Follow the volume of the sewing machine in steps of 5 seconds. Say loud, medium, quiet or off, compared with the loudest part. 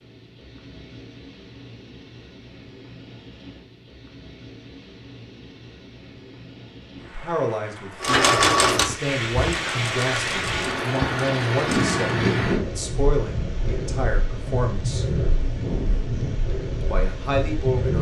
off, loud, medium, off.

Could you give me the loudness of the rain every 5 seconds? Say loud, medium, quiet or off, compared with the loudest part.
quiet, medium, loud, loud.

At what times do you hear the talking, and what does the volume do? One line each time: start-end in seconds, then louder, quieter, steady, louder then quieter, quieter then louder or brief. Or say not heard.
7.0-15.1 steady
16.8-17.9 brief.